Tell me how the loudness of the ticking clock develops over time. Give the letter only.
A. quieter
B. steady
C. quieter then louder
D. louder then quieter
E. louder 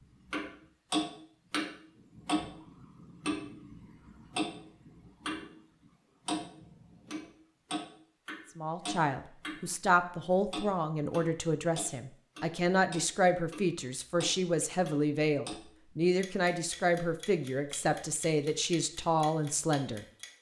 A.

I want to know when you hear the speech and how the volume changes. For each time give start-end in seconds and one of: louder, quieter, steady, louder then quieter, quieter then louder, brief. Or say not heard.
8.6-20.1 steady.